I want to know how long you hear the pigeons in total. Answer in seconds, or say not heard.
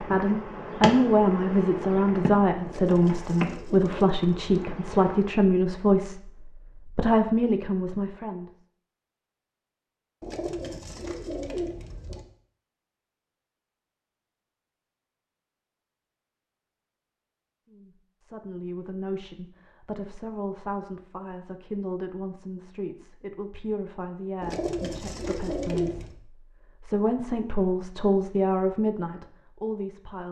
6 s.